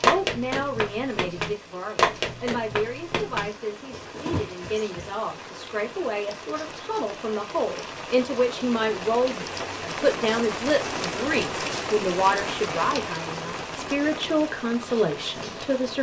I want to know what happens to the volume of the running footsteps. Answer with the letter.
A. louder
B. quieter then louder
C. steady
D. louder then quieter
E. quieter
D.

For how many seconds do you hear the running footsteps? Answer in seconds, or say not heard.
5 s.